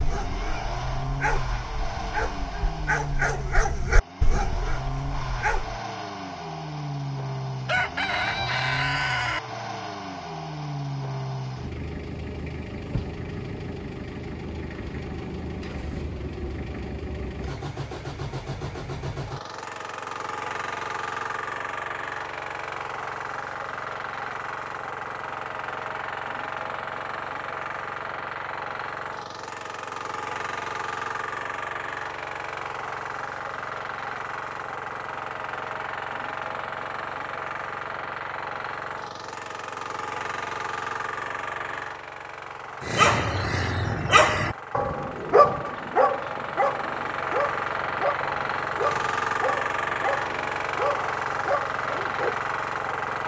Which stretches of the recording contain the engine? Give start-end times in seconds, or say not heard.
0.0-53.2.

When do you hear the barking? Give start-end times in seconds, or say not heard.
0.0-5.8, 42.8-52.4.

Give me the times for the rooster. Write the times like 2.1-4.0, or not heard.
7.7-9.4.